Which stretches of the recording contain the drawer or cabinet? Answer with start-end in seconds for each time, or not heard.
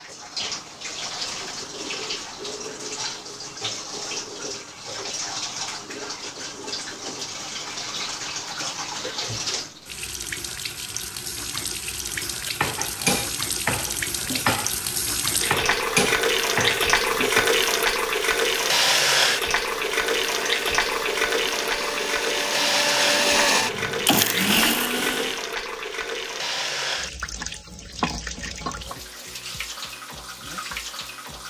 not heard.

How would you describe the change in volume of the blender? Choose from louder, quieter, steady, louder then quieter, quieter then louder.
louder.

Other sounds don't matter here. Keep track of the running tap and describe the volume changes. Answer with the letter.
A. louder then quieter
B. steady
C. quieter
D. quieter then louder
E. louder
A.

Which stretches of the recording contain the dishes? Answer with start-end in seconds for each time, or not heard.
12.0-17.5.